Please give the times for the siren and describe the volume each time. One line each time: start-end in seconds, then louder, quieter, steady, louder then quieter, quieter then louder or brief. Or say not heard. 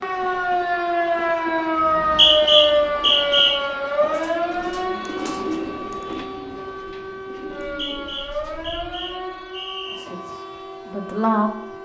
0.0-11.8 quieter.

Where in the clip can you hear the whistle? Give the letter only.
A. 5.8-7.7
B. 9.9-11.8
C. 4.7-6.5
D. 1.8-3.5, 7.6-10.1
D.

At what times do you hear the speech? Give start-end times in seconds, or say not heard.
9.9-11.8.